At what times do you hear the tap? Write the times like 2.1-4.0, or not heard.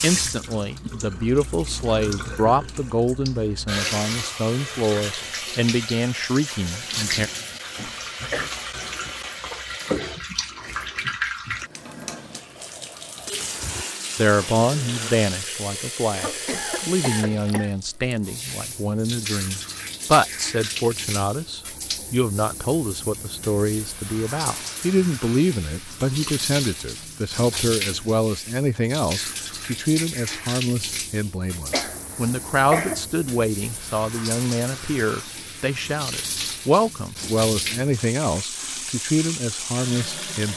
0.0-40.5.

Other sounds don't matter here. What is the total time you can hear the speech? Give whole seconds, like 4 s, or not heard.
34 s.